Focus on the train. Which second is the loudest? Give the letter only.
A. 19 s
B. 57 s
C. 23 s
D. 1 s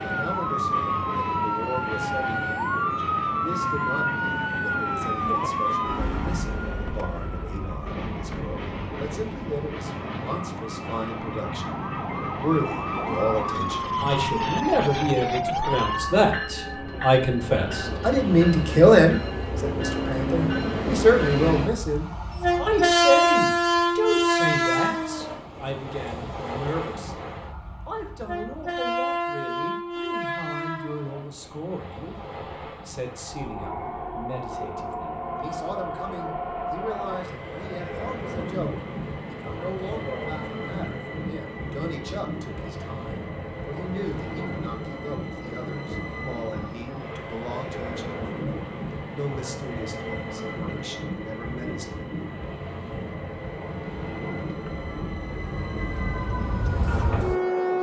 C.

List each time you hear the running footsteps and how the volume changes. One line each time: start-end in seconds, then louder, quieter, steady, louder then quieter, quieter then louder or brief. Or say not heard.
not heard.